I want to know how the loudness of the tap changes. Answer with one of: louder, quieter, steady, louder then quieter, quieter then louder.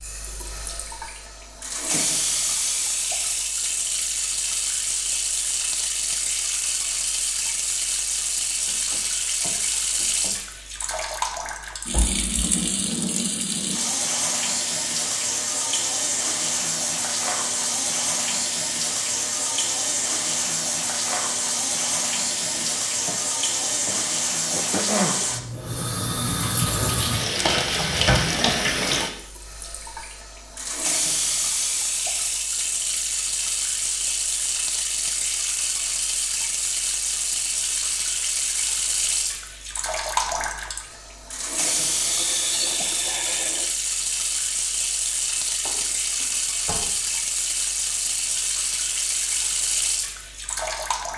steady.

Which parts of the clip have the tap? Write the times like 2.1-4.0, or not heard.
0.0-51.1.